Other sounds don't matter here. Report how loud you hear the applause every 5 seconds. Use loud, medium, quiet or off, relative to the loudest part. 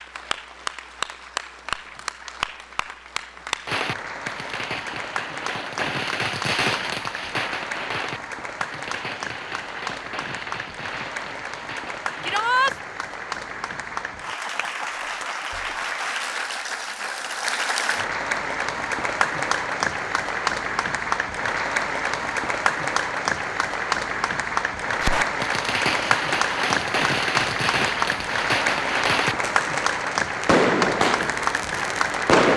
medium, medium, medium, loud, loud, loud, loud.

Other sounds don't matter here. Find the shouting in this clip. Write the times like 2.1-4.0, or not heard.
12.2-12.8.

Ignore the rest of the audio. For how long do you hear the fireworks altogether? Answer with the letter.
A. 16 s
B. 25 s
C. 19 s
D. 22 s
A.